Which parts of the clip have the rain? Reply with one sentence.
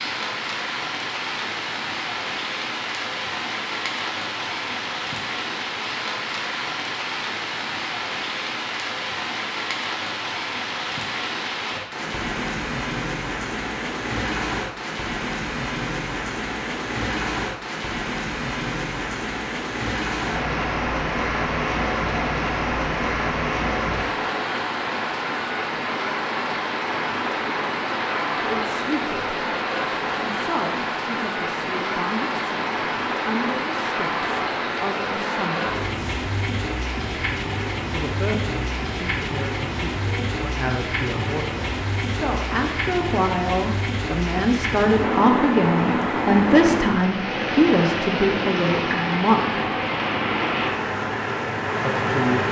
You can hear the rain from 0.0 to 52.4 s.